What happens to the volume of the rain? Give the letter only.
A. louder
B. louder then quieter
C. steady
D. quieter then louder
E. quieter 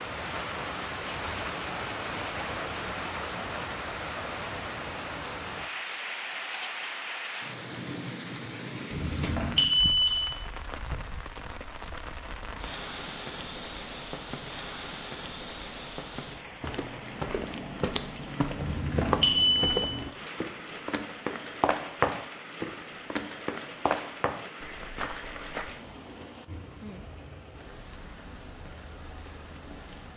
E.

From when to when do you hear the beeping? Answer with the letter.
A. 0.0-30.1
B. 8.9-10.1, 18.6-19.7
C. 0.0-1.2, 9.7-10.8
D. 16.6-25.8
B.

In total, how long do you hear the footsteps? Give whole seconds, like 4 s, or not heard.
9 s.